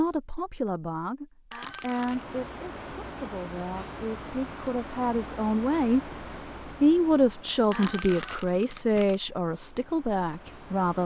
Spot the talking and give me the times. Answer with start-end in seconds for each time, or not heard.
0.0-6.1, 6.8-11.0.